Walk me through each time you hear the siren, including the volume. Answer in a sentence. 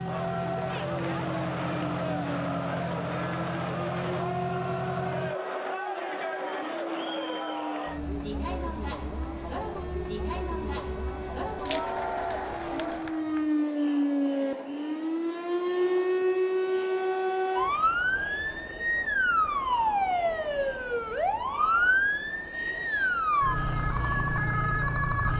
The siren can be heard from 0.0 to 25.3 s, getting louder.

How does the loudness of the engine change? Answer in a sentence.
The volume of the engine stays about the same.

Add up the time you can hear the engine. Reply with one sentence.
You can hear the engine for 5 seconds altogether.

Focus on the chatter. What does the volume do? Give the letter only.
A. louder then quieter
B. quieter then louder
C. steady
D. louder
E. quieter
E.